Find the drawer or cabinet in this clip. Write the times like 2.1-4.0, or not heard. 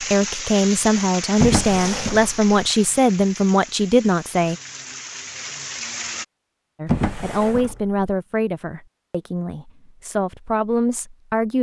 1.4-2.4, 6.8-8.0.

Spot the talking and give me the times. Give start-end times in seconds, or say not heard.
0.0-4.5, 6.8-11.5.